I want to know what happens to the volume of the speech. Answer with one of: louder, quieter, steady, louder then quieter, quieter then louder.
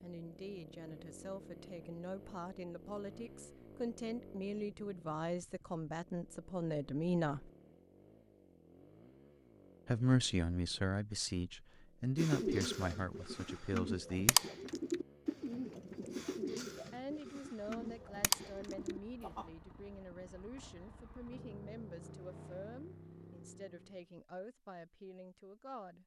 louder then quieter.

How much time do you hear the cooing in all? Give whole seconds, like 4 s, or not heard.
7 s.